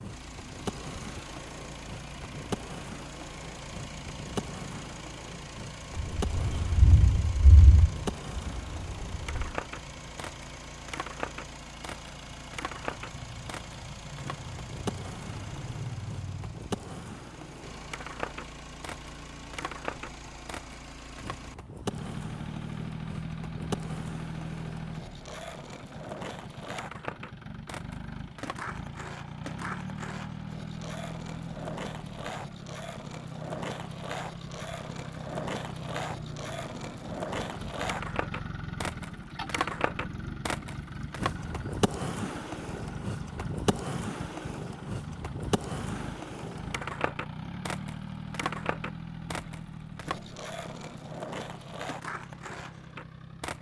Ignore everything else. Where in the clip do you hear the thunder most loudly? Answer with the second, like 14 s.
7 s.